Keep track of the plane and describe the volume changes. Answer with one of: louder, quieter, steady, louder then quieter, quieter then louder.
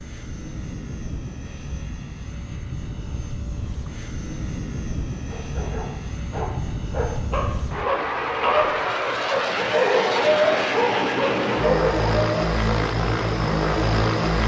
louder.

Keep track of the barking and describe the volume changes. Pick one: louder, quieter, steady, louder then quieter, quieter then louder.
louder.